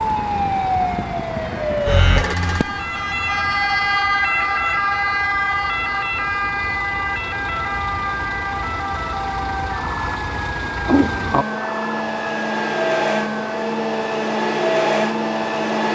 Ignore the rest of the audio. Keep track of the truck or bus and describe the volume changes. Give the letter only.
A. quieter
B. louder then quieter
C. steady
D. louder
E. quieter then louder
D.